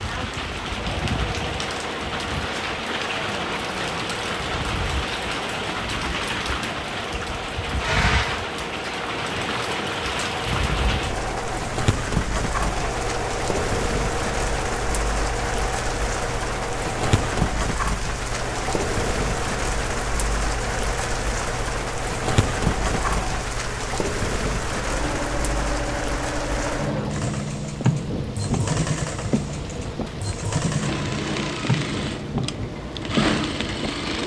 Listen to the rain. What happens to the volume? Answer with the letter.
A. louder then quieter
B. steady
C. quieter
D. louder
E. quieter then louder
B.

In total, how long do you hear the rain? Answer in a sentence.
The rain can be heard for 34 seconds in total.